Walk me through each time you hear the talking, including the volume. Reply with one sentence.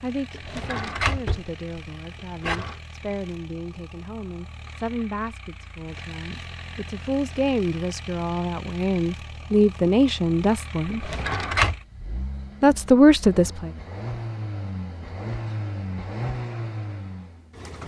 You can hear the talking from 0.0 to 11.1 s, getting louder; and briefly from 12.6 to 13.7 s.